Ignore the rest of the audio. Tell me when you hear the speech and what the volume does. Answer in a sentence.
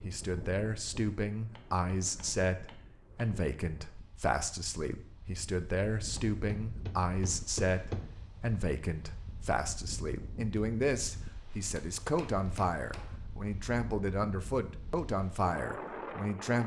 You can hear the speech from 0.1 to 16.6 s, at a steady volume.